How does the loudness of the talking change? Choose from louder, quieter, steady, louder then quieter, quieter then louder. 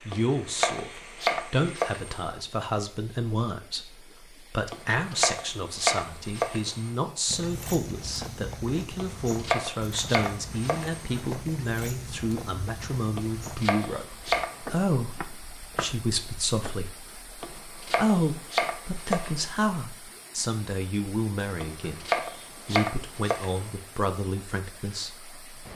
steady.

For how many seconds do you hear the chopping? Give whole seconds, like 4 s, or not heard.
12 s.